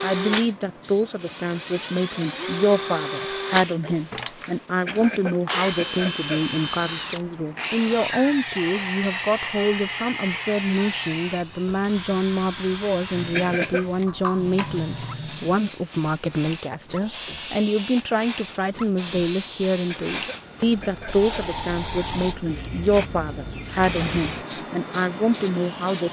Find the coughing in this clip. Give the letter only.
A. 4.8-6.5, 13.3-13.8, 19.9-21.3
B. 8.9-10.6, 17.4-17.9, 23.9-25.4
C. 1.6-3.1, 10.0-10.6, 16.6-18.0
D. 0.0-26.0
A.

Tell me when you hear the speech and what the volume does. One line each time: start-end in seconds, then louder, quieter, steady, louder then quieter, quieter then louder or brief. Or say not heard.
0.0-26.0 steady.